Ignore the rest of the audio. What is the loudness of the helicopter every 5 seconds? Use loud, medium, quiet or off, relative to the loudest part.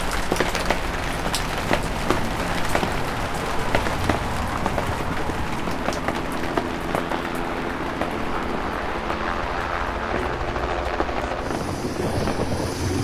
medium, loud, loud.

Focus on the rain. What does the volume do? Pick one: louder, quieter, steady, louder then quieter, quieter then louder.
quieter.